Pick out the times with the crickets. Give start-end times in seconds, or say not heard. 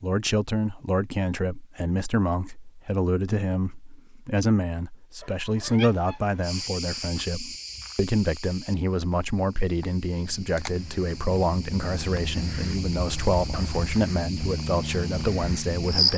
6.4-16.1.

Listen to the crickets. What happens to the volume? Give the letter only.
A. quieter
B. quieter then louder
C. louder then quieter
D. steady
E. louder
B.